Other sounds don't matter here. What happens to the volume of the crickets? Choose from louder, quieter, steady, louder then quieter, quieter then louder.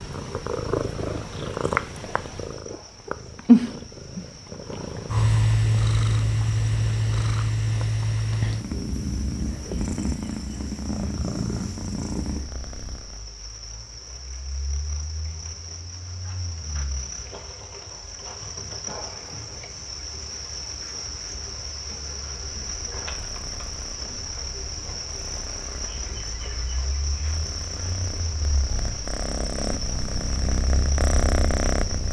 louder.